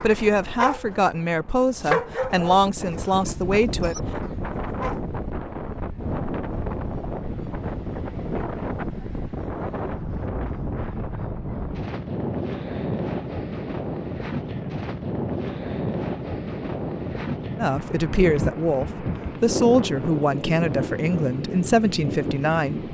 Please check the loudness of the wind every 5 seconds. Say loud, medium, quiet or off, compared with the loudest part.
medium, loud, loud, loud, loud.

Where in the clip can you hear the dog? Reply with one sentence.
You can hear the dog from 0.0 to 1.0 s and from 1.8 to 5.1 s.